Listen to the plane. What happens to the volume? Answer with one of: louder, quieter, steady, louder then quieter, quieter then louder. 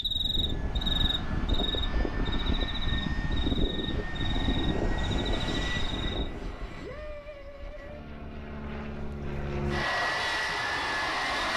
quieter then louder.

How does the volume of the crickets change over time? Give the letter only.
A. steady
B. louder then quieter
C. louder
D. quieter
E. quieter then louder
D.